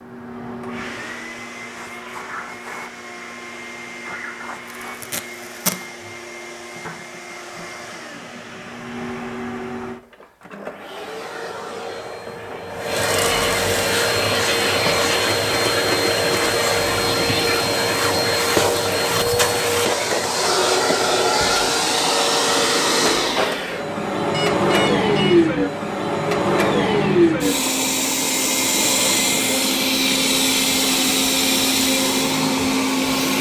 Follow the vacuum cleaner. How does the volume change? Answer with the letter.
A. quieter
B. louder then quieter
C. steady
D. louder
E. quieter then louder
D.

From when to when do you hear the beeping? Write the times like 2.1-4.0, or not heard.
24.3-25.4.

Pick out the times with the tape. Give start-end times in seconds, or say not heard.
4.8-5.8.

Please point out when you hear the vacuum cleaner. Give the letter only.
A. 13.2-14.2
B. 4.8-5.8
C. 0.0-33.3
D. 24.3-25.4
C.